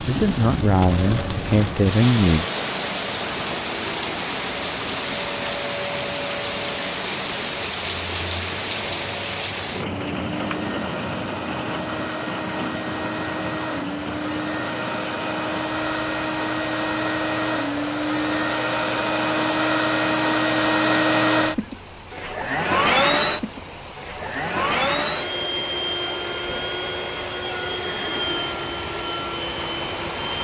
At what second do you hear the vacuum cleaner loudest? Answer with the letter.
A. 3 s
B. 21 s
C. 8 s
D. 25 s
B.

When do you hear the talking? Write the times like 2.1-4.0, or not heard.
0.0-2.5.